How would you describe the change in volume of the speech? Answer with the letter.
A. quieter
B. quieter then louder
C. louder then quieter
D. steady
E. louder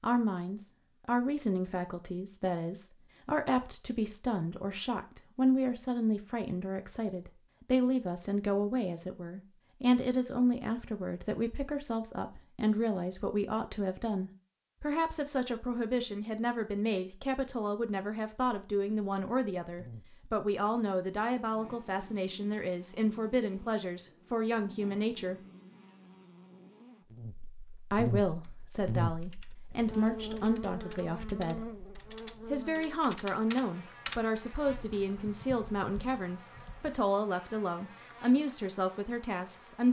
D.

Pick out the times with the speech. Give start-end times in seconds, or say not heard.
0.0-25.4, 27.9-31.7, 32.5-39.8.